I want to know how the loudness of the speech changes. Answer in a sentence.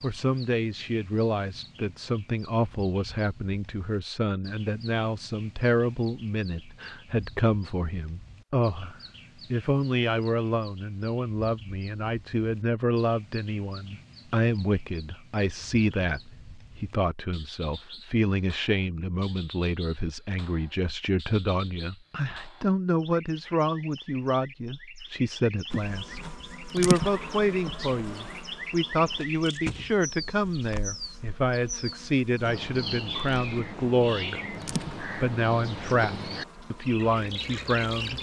The loudness of the speech stays about the same.